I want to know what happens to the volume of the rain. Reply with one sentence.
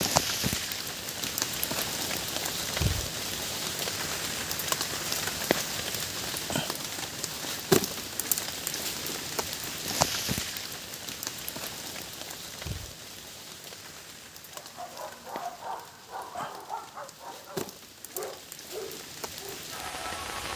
The volume of the rain goes down.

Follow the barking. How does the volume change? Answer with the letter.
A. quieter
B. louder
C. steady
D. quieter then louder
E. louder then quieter
C.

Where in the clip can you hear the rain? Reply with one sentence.
The rain can be heard from 0.0 to 20.5 s.